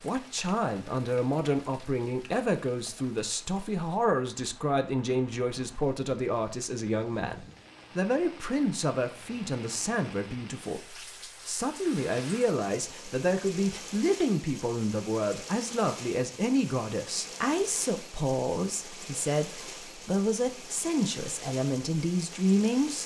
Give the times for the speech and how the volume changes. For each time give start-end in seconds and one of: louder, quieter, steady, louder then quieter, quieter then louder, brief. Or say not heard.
0.0-23.0 steady.